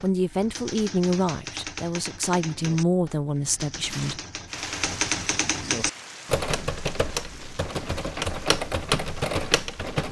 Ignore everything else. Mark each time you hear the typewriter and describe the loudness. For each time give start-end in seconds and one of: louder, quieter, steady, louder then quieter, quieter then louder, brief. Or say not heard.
0.0-10.0 louder.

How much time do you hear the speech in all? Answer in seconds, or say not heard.
4 s.